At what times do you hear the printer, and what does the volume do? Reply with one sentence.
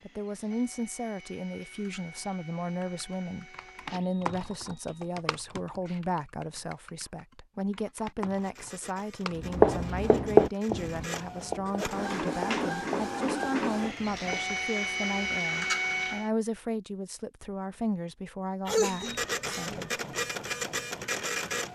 You can hear the printer from 0.0 to 5.2 s, at a steady volume; from 8.3 to 16.3 s, getting louder; and briefly from 18.8 to 21.7 s.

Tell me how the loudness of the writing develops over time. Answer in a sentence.
The volume of the writing goes down.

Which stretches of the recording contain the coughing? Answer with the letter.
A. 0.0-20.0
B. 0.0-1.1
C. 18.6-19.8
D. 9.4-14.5
C.